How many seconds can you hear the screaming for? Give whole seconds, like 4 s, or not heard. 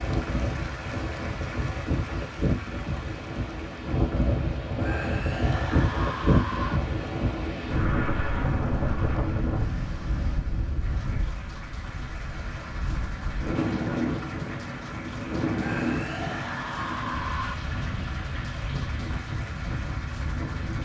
4 s.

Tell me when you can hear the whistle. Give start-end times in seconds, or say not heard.
not heard.